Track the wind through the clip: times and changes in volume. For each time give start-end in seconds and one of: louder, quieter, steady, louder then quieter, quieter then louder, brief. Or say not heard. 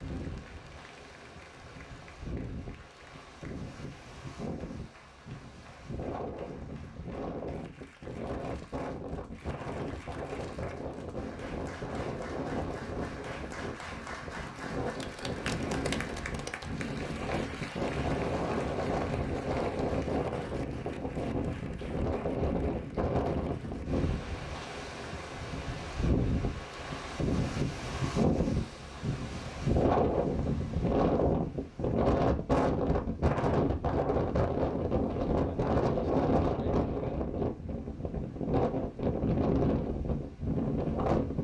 0.0-41.3 louder.